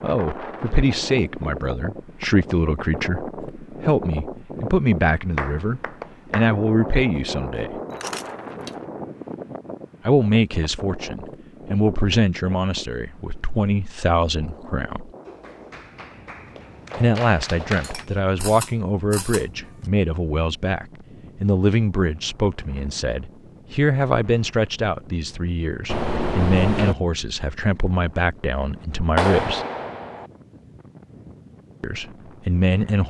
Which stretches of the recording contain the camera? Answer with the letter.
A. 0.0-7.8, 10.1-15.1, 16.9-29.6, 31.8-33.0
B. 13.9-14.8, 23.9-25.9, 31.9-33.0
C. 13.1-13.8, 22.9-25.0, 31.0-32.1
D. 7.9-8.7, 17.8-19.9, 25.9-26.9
D.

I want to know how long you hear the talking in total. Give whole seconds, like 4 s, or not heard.
27 s.